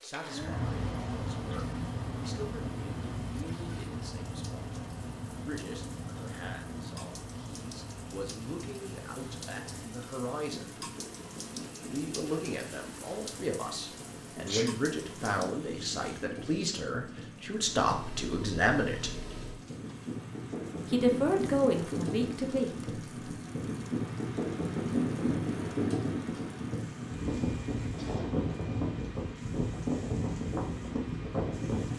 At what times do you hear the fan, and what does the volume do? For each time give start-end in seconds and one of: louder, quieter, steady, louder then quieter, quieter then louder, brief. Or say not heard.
0.0-31.9 quieter then louder.